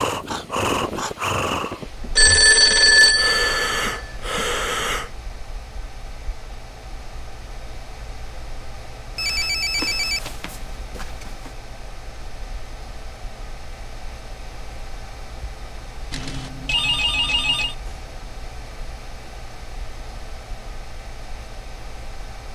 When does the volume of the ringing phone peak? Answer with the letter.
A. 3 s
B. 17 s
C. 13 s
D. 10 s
A.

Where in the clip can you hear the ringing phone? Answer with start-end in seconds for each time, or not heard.
2.0-4.5, 9.2-11.5, 16.1-17.8.